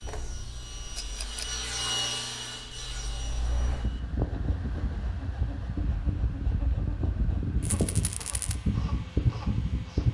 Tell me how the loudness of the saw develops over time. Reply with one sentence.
The loudness of the saw goes down.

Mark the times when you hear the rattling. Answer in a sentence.
You can hear the rattling from 0.9 to 1.6 s and from 7.6 to 8.6 s.